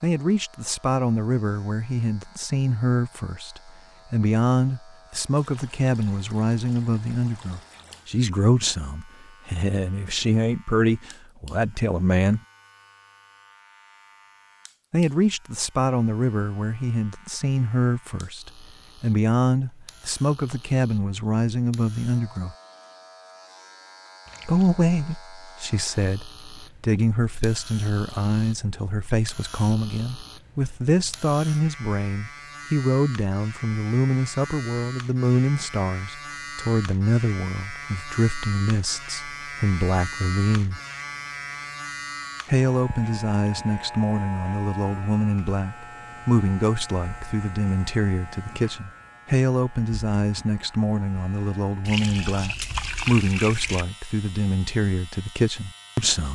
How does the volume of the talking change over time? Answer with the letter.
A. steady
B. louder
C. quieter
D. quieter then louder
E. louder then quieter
A.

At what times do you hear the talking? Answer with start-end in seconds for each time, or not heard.
0.0-12.4, 14.9-22.6, 24.4-40.8, 42.5-56.3.